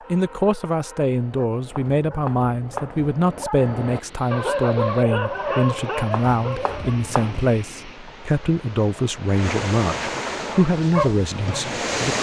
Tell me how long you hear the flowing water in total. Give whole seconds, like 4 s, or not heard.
8 s.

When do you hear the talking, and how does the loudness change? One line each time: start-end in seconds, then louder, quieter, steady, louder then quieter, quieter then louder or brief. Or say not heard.
0.1-12.1 steady.